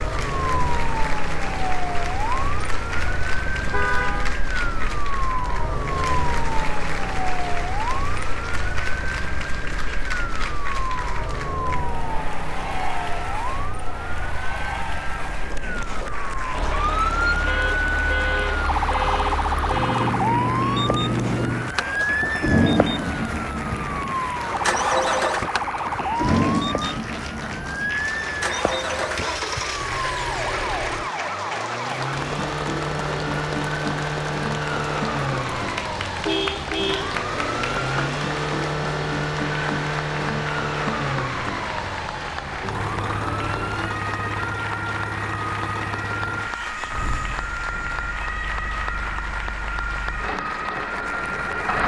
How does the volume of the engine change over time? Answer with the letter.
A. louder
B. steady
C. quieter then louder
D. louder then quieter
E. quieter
E.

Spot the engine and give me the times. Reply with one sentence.
The engine can be heard from 16.5 to 51.8 s.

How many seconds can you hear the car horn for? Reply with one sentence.
The car horn can be heard for 5 seconds in total.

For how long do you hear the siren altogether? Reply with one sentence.
The siren can be heard for 52 seconds in total.